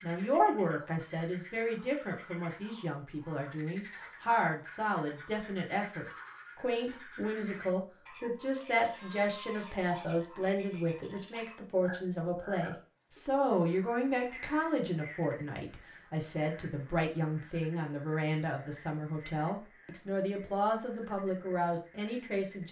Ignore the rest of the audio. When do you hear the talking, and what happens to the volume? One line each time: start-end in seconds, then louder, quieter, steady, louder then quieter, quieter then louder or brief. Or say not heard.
0.0-22.6 steady.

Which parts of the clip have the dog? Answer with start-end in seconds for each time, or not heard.
not heard.